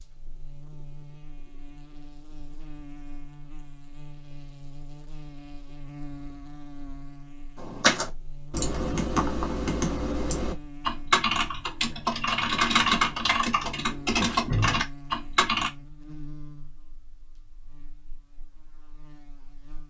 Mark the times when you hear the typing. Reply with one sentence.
You can hear the typing from 7.5 to 15.7 s.